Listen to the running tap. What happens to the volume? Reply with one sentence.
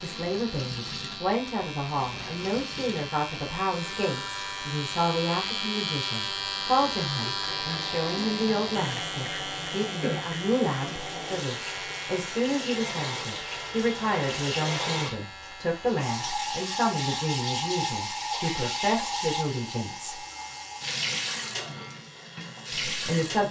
The volume of the running tap goes up.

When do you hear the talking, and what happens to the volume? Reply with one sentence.
You can hear the talking from 0.0 to 20.2 s, at a steady volume; and briefly from 22.9 to 23.4 s.